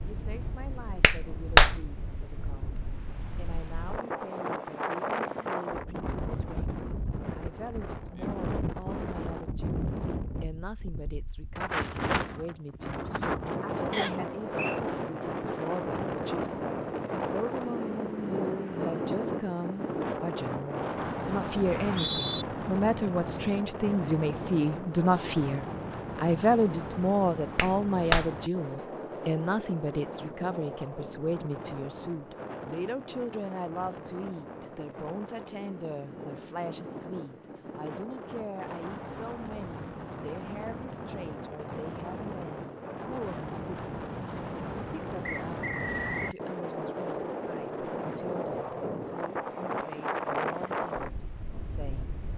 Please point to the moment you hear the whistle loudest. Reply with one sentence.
The loudest moment of the whistle is at 22 seconds.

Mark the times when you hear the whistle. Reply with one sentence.
The whistle can be heard from 13.9 to 14.8 s, from 21.6 to 22.4 s and from 45.2 to 46.4 s.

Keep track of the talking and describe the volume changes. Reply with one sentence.
The loudness of the talking goes up, then down.